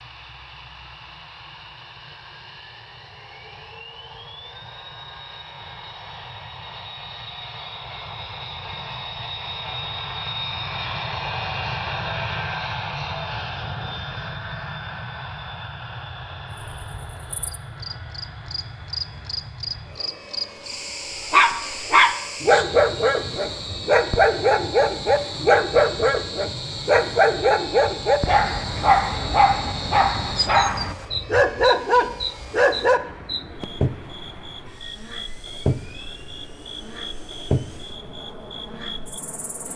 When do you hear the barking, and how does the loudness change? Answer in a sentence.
The barking can be heard from 21.3 to 33.0 s, at a steady volume.